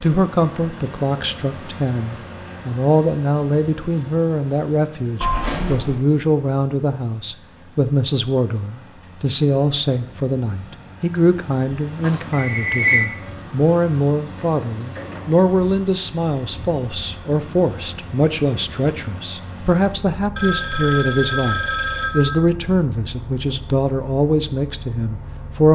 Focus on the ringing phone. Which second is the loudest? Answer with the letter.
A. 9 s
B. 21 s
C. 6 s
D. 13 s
D.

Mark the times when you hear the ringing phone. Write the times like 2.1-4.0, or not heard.
5.2-6.0, 12.0-13.1, 20.4-22.4.